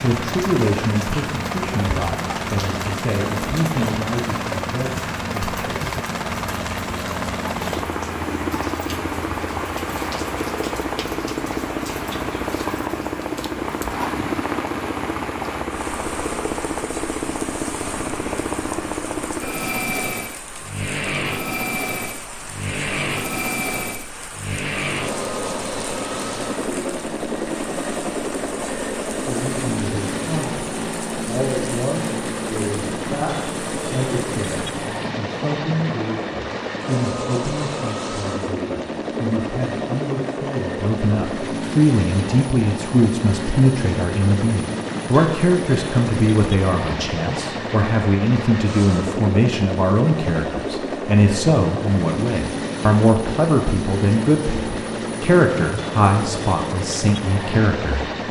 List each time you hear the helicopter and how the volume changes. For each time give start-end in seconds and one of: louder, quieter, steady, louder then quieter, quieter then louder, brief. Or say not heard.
0.0-58.2 steady.